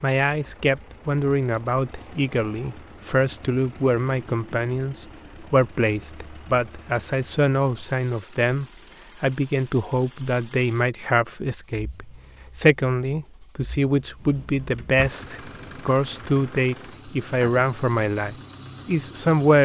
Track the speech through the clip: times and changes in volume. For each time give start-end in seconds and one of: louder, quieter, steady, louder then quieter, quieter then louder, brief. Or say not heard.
0.0-19.6 steady.